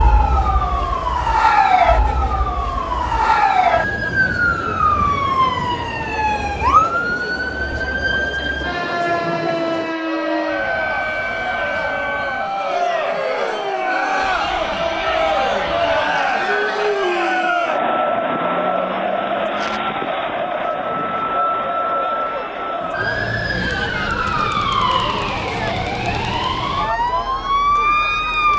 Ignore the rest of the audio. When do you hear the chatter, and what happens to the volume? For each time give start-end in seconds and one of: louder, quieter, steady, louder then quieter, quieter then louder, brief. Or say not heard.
0.0-28.5 louder then quieter.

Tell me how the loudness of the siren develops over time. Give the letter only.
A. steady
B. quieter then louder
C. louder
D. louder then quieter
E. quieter
B.